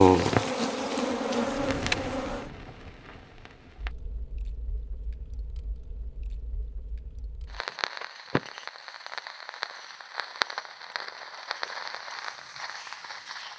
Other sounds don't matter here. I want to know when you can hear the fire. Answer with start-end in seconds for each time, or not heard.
0.1-13.5.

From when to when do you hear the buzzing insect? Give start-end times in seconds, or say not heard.
0.0-2.5.